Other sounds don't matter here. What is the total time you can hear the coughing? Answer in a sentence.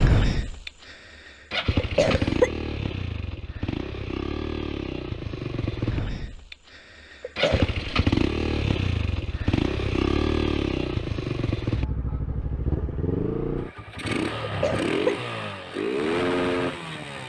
The coughing can be heard for 2 seconds in total.